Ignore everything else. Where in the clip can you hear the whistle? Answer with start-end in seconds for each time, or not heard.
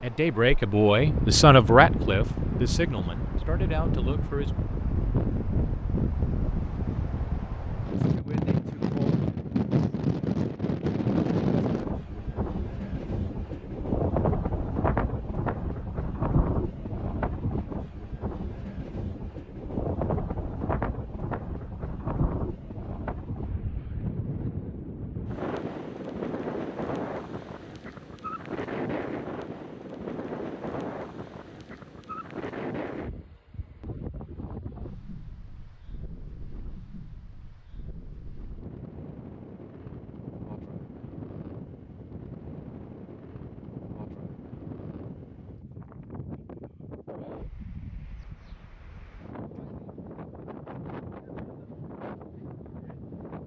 not heard.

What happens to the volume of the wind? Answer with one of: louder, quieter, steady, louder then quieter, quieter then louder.
quieter.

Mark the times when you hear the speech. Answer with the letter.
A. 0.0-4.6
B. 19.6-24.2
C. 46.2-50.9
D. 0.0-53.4
A.